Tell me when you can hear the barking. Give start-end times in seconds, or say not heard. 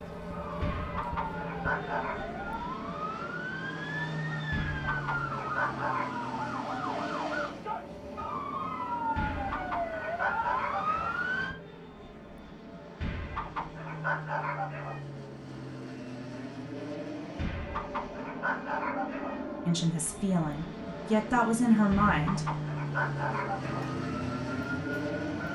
0.6-2.2, 4.5-6.2, 9.2-11.2, 13.0-15.0, 17.4-19.4, 21.9-23.9.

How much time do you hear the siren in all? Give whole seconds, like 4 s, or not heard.
13 s.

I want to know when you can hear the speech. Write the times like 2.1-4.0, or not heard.
19.6-22.4.